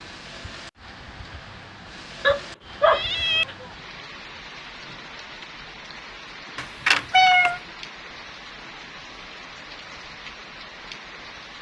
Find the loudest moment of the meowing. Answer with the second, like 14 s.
7 s.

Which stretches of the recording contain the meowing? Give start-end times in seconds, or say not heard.
2.2-3.7, 6.5-7.6.